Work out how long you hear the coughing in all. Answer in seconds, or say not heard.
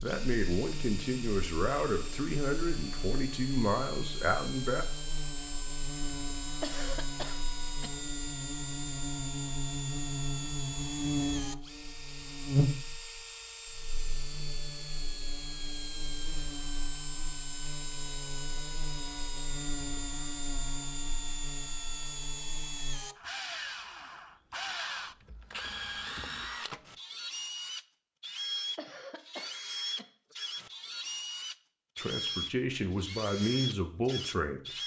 3 s.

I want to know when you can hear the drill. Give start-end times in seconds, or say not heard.
0.0-34.8.